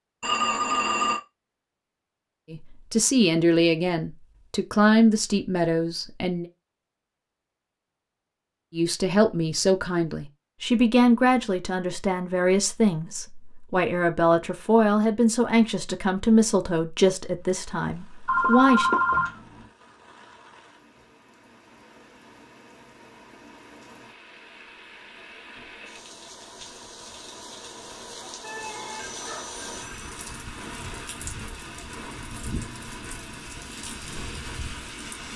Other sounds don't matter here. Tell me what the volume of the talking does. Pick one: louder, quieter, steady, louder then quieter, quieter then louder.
steady.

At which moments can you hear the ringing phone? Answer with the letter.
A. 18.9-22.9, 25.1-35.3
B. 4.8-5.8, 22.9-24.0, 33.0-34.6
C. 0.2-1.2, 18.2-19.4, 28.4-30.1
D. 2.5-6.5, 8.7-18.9
C.